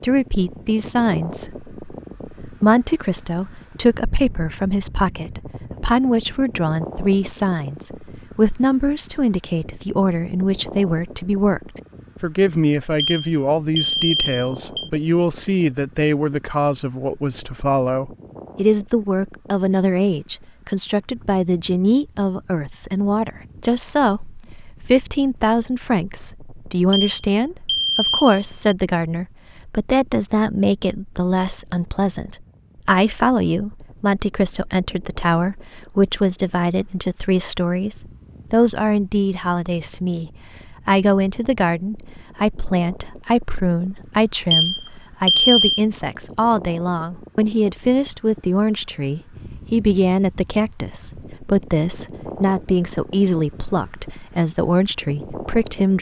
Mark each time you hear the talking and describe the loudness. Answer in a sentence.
You can hear the talking from 0.0 to 55.9 s, at a steady volume.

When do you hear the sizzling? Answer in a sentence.
You can't hear the sizzling here.